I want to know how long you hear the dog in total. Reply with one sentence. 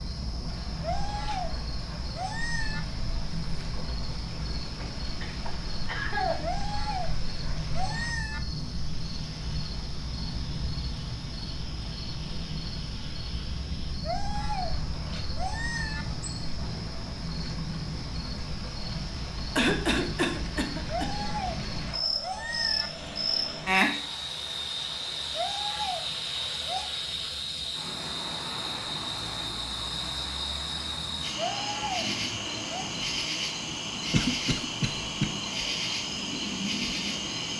You can hear the dog for 11 seconds altogether.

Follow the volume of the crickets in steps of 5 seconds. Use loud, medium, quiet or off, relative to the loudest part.
medium, medium, medium, medium, loud, loud, loud, loud.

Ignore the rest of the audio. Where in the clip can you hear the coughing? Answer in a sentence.
The coughing can be heard from 4.5 to 6.5 s, from 19.6 to 21.2 s and from 34.1 to 35.2 s.